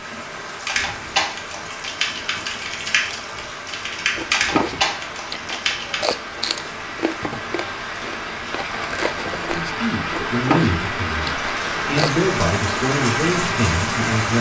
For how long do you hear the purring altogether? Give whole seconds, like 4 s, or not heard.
not heard.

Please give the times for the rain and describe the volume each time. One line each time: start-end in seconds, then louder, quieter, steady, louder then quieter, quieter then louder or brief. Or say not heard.
0.0-14.3 louder.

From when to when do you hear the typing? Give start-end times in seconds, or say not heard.
0.7-6.2.